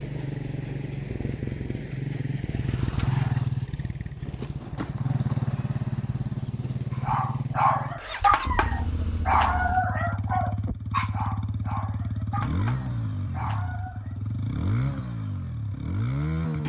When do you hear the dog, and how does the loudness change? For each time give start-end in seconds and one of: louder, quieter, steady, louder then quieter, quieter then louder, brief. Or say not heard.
7.0-14.2 quieter.